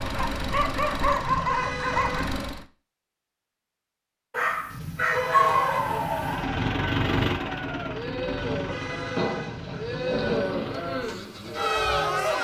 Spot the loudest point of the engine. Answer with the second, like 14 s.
7 s.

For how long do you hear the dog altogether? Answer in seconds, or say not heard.
6 s.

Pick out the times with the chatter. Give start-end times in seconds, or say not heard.
5.2-12.3.